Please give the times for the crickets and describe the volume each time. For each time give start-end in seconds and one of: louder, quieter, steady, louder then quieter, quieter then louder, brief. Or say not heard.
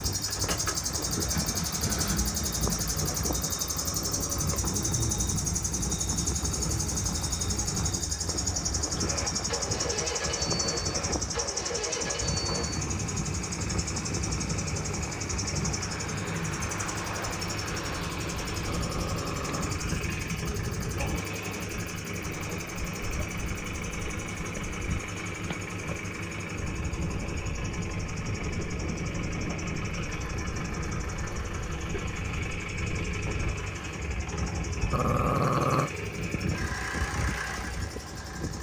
0.0-38.5 quieter.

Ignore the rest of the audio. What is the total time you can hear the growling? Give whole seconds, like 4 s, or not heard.
4 s.